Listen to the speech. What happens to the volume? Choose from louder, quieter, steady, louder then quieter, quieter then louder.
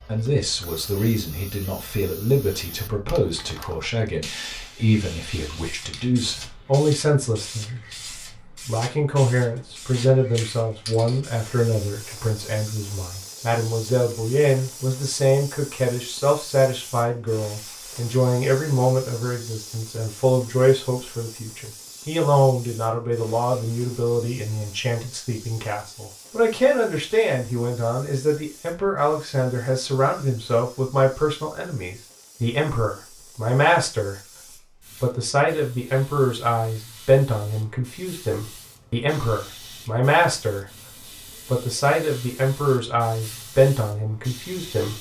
steady.